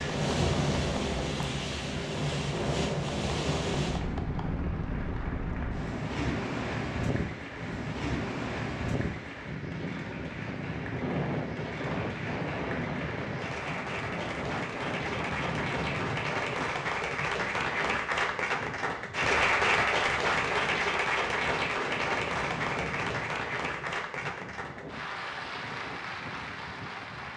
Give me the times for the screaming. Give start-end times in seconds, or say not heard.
not heard.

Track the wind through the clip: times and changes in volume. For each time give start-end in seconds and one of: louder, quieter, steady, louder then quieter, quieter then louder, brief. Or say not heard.
0.0-27.3 quieter.